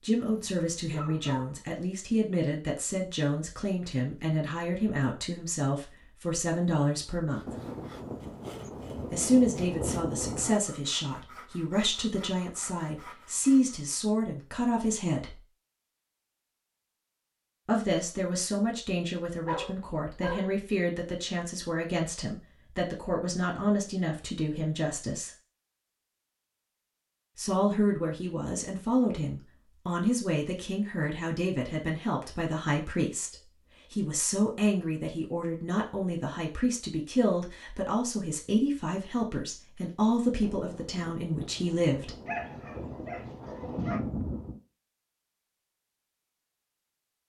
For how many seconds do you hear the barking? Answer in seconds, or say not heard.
4 s.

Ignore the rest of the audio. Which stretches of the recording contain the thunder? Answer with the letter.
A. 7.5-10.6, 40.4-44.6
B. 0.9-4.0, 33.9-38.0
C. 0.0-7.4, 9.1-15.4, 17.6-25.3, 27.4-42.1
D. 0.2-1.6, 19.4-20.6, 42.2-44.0
A.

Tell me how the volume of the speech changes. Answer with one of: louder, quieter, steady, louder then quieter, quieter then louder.
steady.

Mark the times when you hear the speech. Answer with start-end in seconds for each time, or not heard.
0.0-7.4, 9.1-15.4, 17.6-25.3, 27.4-42.1.